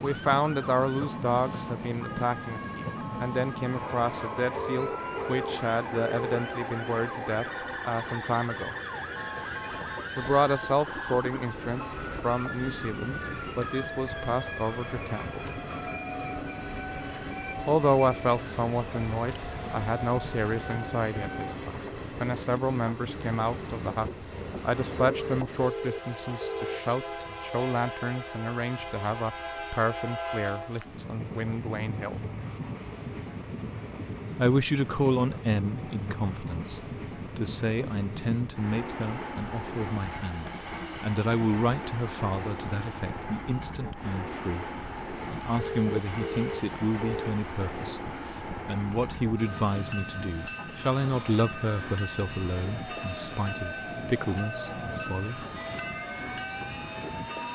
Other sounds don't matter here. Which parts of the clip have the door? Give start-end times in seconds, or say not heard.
not heard.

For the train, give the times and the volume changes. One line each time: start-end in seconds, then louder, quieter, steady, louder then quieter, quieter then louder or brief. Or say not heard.
0.0-57.5 steady.